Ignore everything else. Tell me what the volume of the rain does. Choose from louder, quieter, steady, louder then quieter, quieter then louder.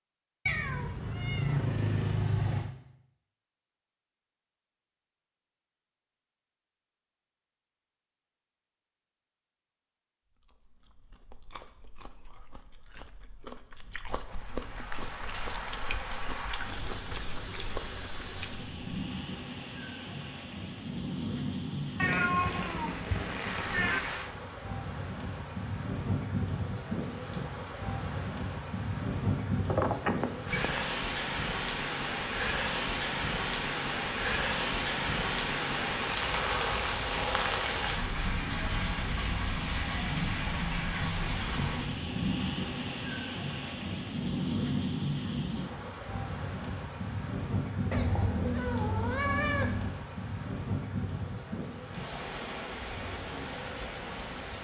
louder then quieter.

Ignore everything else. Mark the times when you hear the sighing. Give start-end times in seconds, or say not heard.
not heard.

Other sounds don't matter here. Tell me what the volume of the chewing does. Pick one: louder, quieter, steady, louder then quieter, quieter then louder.
louder.